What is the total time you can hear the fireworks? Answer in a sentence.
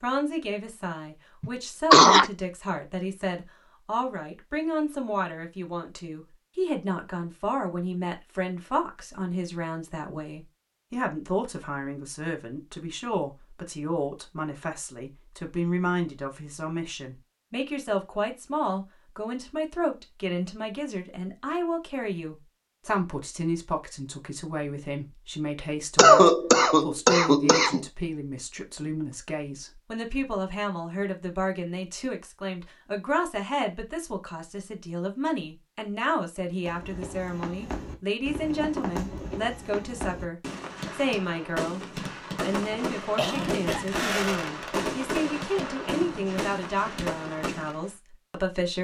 You can hear the fireworks for 11 seconds altogether.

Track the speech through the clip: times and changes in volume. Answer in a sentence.
You can hear the speech from 0.0 to 48.7 s, at a steady volume.